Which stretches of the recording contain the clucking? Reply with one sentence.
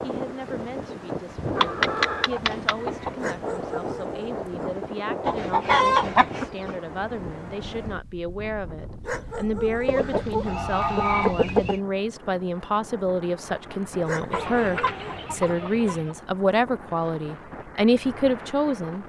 The clucking can be heard from 1.6 to 3.1 s, from 5.2 to 6.8 s, from 9.8 to 11.8 s and from 14.3 to 16.1 s.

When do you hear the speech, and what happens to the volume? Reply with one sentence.
The speech can be heard from 0.0 to 19.0 s, getting louder.